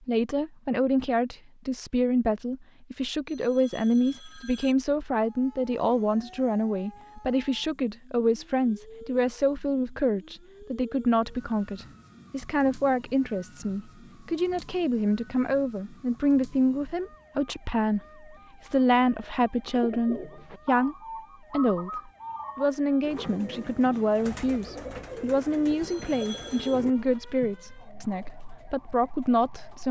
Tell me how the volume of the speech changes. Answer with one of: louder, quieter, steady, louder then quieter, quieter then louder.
steady.